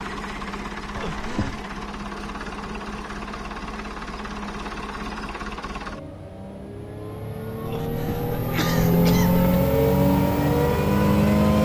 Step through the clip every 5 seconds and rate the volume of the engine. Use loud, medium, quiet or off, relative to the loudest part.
quiet, medium, loud.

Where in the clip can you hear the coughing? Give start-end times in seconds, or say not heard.
0.9-1.6, 7.7-9.6.